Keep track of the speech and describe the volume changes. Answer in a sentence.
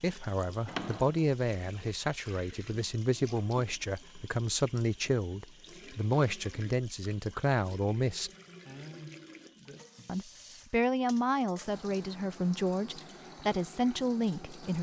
The volume of the speech stays about the same.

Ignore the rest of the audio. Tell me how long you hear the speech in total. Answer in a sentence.
You can hear the speech for 13 seconds altogether.